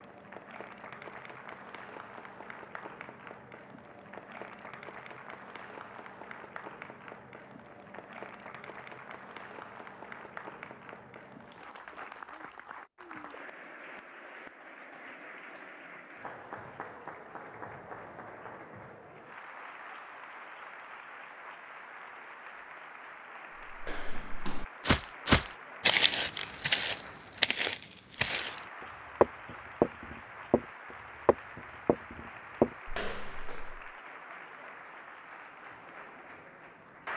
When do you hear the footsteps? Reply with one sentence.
The footsteps can be heard from 23.6 to 33.9 s.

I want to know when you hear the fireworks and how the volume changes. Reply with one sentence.
The fireworks can't be heard in this clip.